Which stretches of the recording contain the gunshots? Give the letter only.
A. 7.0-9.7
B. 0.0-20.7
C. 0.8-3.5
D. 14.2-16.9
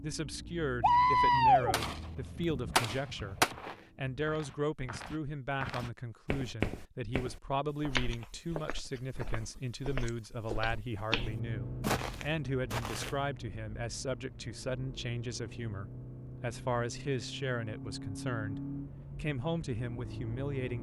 C.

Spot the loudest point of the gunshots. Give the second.
1 s.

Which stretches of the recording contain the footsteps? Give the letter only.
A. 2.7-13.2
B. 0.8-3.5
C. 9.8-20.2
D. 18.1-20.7
A.